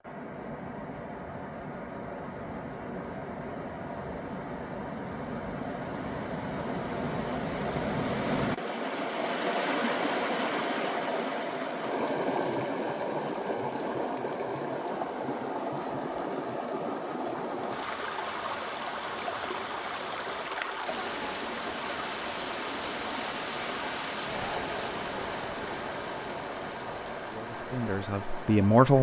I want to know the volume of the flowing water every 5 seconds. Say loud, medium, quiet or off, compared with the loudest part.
medium, loud, loud, loud, loud, medium.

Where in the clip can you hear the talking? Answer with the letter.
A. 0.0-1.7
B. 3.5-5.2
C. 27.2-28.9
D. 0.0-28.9
C.